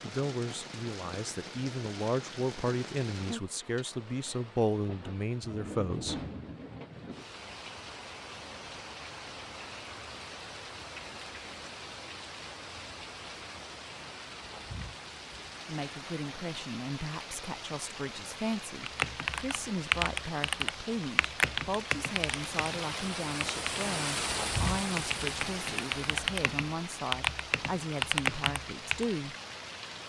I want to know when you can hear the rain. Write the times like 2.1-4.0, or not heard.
0.0-30.0.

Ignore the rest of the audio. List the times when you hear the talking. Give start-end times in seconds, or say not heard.
0.0-6.2, 15.7-29.4.